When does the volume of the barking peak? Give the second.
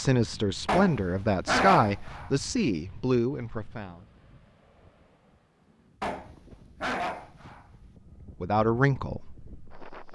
2 s.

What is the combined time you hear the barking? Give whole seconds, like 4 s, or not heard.
4 s.